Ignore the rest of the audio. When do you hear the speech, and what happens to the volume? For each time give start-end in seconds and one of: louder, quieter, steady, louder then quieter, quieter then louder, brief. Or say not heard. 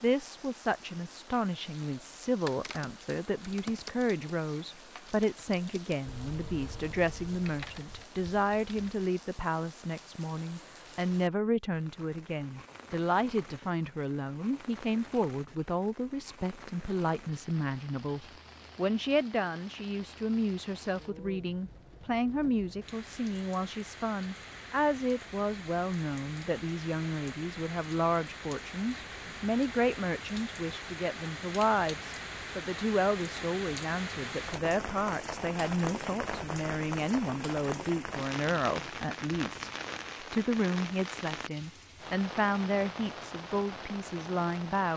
0.0-44.9 steady.